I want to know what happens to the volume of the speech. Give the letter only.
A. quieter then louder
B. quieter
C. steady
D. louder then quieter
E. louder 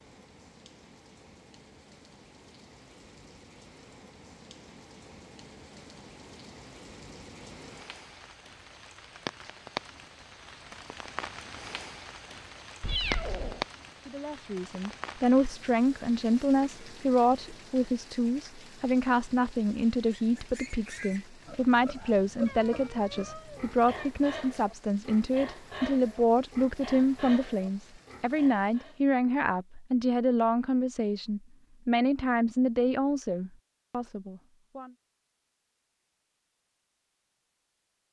C.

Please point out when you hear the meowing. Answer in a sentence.
You can hear the meowing from 12.8 to 13.7 s and from 22.4 to 24.1 s.